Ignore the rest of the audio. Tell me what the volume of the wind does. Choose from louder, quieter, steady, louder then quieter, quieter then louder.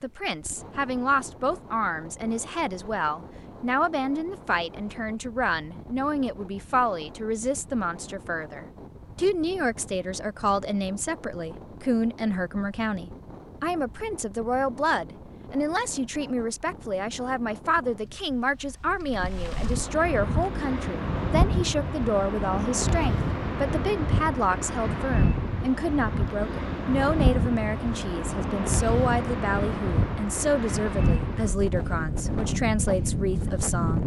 louder.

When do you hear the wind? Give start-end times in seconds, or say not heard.
0.0-34.0.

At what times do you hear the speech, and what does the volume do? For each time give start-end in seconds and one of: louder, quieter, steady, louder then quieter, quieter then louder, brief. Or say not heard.
0.0-34.0 steady.